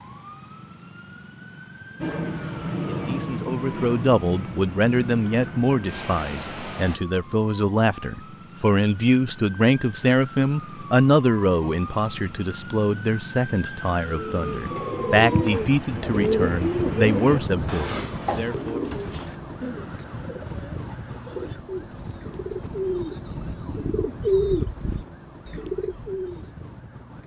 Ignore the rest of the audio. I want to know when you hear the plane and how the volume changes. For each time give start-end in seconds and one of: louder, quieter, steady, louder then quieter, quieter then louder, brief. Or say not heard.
2.0-7.0 quieter.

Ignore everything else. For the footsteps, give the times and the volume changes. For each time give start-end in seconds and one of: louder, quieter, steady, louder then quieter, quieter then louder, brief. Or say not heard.
not heard.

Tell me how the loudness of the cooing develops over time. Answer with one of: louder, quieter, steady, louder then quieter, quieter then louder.
quieter then louder.